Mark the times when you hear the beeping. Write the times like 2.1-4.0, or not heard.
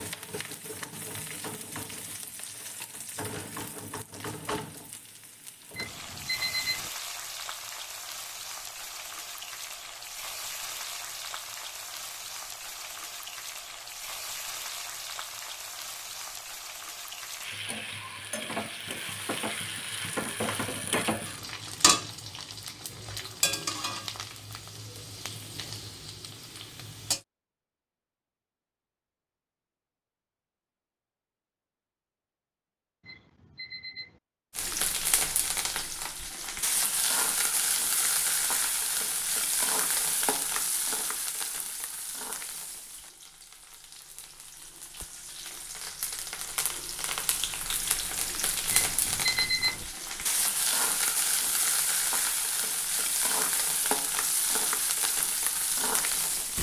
5.7-6.9, 33.0-34.2, 48.7-49.9.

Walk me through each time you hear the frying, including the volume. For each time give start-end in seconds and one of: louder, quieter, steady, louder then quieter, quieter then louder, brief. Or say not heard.
0.0-27.2 louder
34.5-56.5 quieter then louder.